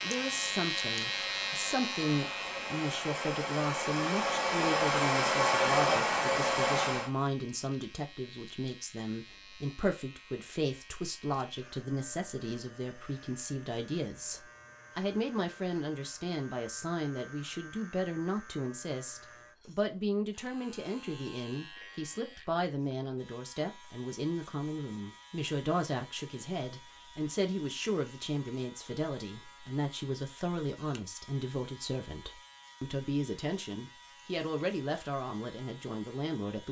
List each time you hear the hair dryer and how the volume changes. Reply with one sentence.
The hair dryer can be heard from 0.0 to 7.1 s, getting louder.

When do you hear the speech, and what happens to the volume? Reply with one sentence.
You can hear the speech from 0.0 to 36.6 s, at a steady volume.